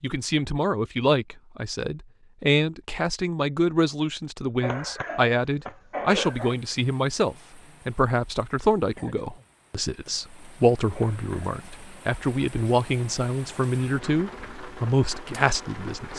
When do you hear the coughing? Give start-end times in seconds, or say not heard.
4.6-6.5, 10.9-11.6.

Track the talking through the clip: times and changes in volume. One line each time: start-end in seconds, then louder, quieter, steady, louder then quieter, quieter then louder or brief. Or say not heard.
0.0-16.1 steady.